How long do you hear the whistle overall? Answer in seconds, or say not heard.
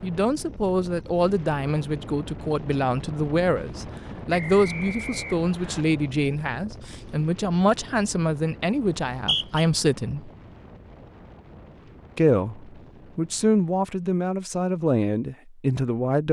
2 s.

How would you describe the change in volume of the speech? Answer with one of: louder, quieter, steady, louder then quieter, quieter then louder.
steady.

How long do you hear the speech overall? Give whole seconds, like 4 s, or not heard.
14 s.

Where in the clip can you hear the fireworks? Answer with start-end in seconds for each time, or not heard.
not heard.